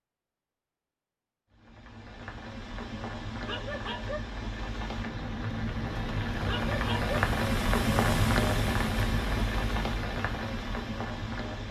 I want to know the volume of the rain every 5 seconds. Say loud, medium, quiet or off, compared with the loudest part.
medium, loud, medium.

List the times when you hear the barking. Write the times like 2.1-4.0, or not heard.
3.5-4.2, 6.5-7.2.